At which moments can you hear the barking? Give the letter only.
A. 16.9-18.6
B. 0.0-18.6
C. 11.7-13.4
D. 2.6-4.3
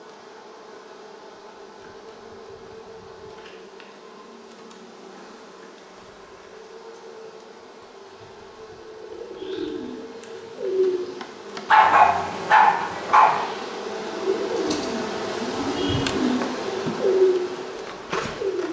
C.